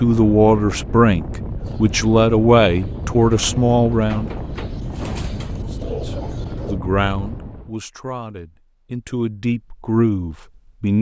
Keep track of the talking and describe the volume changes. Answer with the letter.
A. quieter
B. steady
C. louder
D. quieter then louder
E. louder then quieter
D.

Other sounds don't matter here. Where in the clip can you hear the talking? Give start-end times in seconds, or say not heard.
0.0-4.3, 5.8-10.9.